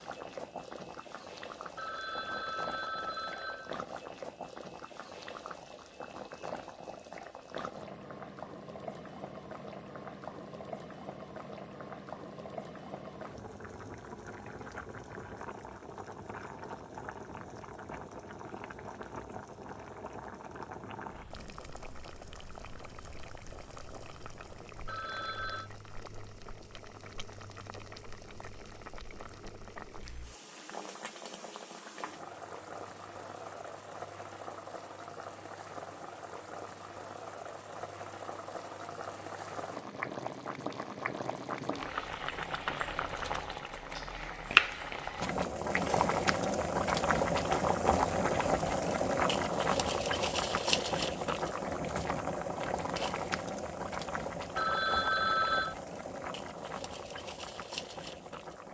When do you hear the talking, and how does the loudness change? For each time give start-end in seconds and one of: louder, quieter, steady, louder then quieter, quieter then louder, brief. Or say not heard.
not heard.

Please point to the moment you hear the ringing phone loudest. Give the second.
55 s.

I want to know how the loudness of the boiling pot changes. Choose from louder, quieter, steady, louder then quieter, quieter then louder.
louder.